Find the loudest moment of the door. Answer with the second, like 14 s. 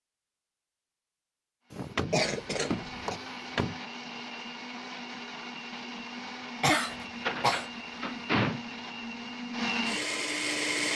8 s.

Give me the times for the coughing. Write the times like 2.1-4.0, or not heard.
2.1-3.1, 6.6-7.7.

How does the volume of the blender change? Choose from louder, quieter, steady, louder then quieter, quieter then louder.
louder.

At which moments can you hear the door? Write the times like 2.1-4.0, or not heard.
1.7-3.8, 7.2-8.6.